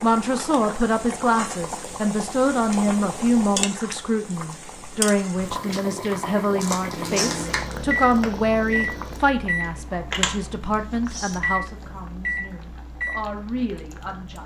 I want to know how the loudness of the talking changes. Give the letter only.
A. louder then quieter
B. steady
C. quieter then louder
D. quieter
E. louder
D.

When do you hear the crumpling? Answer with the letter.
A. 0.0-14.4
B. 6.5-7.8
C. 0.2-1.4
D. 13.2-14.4
B.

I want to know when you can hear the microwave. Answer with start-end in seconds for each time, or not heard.
6.9-14.4.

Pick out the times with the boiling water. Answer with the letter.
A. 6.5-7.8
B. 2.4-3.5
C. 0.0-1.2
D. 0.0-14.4
D.